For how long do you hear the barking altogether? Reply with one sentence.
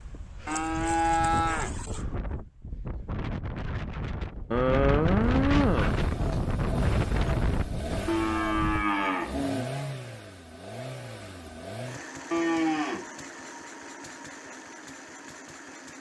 The barking can't be heard in this clip.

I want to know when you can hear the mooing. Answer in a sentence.
The mooing can be heard from 0.5 to 2.0 s, from 4.5 to 6.4 s, from 8.1 to 9.7 s and from 12.3 to 13.1 s.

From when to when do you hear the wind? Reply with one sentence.
The wind can be heard from 0.0 to 8.8 s.